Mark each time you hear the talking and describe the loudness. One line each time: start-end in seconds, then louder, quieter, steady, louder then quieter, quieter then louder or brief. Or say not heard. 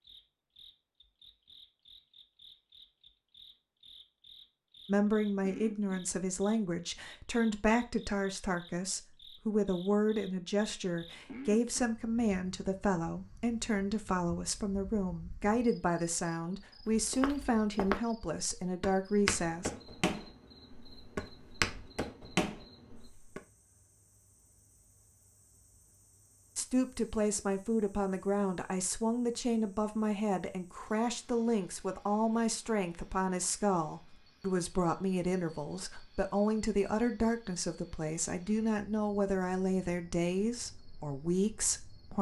4.8-19.7 steady
26.6-42.1 steady.